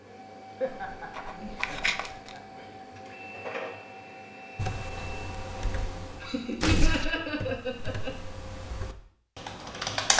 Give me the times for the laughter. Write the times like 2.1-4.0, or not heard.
0.6-2.6, 6.2-8.1.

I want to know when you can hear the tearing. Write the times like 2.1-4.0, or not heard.
0.7-2.4, 6.6-7.2.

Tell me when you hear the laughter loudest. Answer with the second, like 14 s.
7 s.